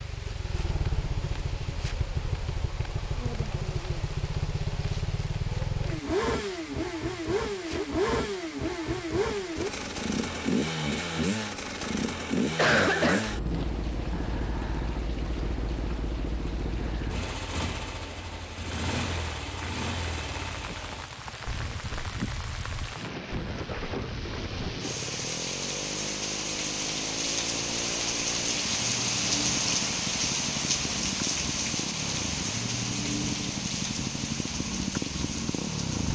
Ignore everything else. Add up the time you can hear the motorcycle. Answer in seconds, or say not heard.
36 s.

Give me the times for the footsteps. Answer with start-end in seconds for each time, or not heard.
not heard.